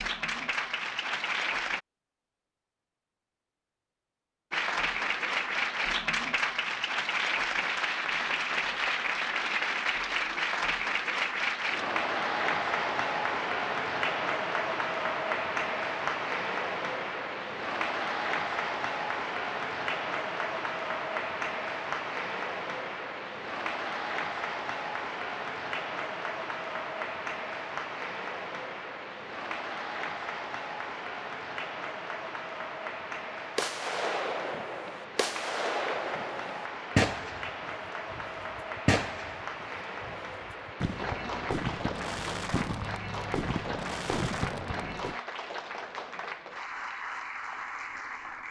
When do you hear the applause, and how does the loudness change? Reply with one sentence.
The applause can be heard briefly from 0.0 to 1.8 s; and from 4.5 to 48.4 s, getting quieter.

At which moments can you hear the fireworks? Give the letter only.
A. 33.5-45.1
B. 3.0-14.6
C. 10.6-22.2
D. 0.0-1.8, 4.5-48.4
A.